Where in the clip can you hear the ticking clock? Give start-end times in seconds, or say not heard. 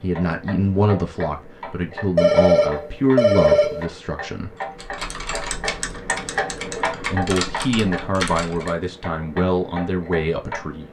0.0-10.8.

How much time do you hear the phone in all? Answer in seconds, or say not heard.
2 s.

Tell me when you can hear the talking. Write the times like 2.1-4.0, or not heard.
0.0-4.5, 6.9-10.8.